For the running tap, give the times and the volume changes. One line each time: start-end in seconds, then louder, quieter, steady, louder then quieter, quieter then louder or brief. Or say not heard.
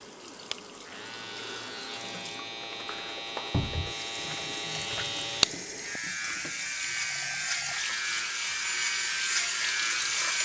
0.0-10.4 louder.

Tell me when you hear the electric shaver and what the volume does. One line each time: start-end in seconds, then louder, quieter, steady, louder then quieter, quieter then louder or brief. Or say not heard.
0.0-10.4 louder.